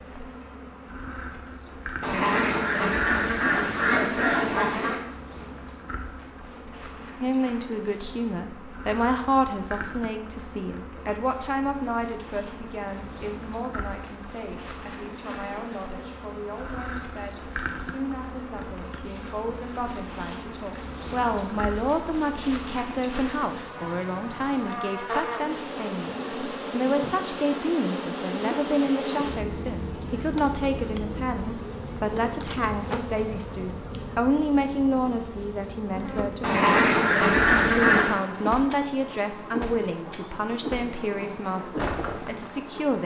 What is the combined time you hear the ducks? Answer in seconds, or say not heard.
5 s.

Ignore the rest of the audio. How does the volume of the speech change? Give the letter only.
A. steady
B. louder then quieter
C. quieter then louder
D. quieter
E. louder
C.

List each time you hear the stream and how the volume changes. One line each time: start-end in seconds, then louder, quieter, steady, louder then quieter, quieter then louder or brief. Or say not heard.
not heard.